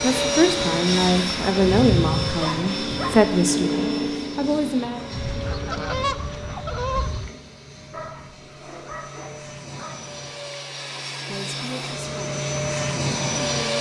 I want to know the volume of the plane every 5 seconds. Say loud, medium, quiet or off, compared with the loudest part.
loud, quiet, loud.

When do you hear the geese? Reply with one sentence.
You can hear the geese from 5.1 to 7.3 s.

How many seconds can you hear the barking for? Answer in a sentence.
You can hear the barking for 3 seconds altogether.